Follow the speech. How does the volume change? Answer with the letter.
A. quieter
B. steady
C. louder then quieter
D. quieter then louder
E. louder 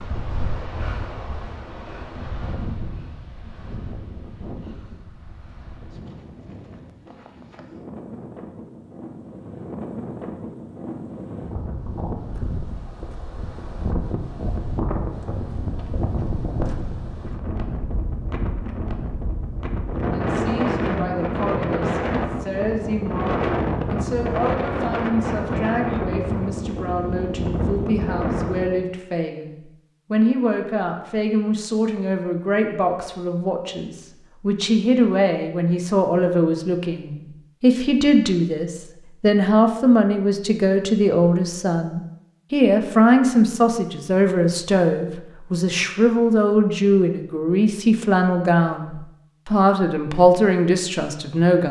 E.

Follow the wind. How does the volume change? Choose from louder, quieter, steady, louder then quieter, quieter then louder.
louder.